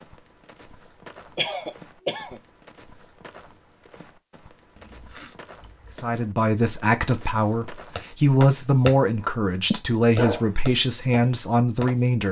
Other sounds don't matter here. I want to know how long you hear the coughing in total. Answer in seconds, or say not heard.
3 s.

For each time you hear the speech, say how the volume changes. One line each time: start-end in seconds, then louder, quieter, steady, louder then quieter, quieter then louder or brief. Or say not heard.
6.0-12.2 steady.